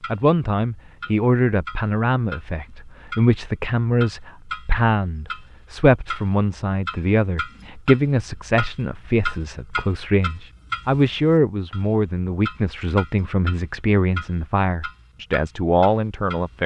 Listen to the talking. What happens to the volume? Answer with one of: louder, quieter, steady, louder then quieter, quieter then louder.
steady.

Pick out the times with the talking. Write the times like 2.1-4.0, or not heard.
0.1-16.6.